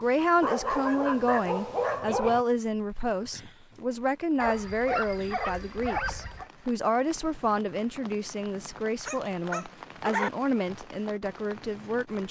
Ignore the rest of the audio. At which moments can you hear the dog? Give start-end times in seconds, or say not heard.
0.4-2.5, 4.3-6.5, 9.1-10.3.